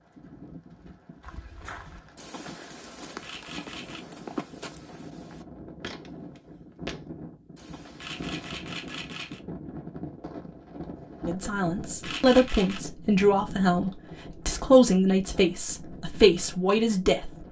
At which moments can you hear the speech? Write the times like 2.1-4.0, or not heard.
11.2-17.4.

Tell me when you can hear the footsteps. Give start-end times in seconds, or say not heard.
1.2-8.5.